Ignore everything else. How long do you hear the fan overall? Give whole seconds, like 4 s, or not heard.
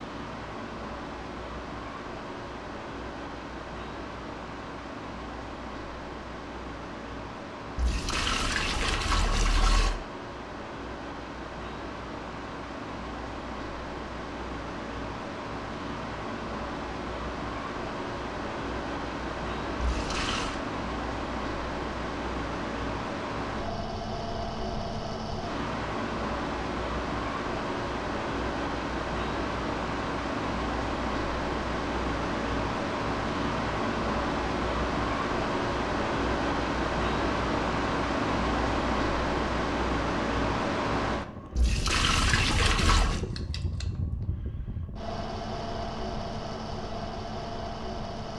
48 s.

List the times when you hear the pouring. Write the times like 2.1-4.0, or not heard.
7.8-10.0, 19.8-20.6, 41.5-43.2.